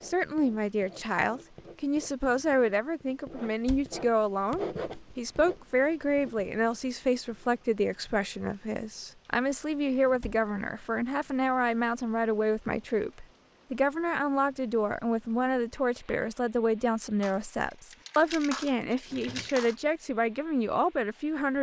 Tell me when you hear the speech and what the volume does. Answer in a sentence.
You can hear the speech from 0.0 to 21.5 s, at a steady volume.